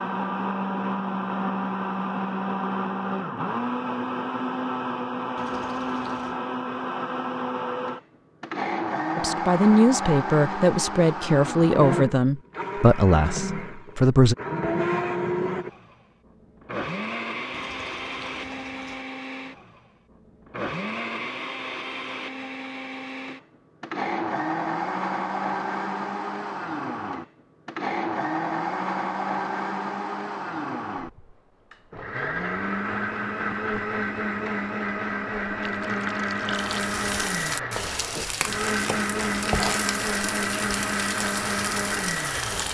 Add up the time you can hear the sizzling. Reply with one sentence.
The sizzling can be heard for 6 seconds in total.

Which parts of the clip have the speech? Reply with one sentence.
You can hear the speech from 9.2 to 14.3 s.